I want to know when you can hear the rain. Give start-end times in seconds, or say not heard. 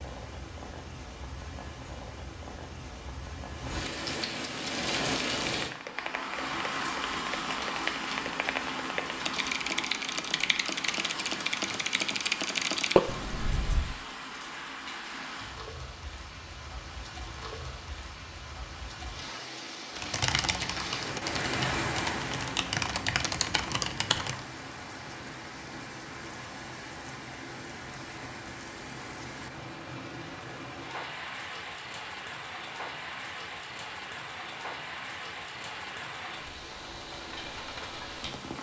0.0-38.5.